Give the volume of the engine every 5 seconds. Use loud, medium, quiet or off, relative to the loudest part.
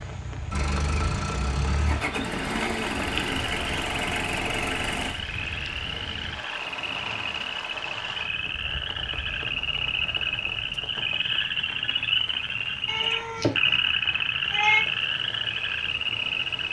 loud, quiet, quiet, quiet.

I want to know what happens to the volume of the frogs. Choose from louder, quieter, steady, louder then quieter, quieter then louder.
louder.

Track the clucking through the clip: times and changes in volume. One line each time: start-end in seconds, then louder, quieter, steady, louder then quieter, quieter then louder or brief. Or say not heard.
not heard.